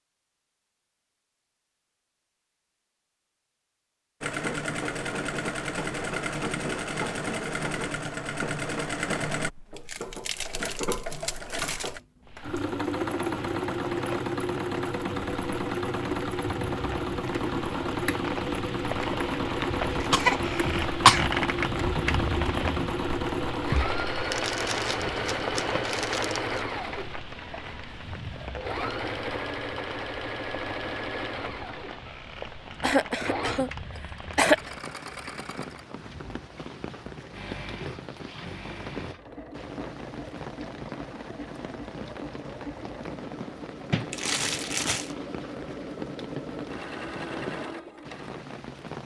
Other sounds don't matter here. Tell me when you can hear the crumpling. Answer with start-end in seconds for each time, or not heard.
9.8-11.9, 24.3-26.6, 43.9-45.1.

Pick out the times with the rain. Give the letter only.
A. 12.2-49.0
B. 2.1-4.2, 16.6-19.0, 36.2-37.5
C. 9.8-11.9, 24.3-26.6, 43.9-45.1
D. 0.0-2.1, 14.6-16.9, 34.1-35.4
A.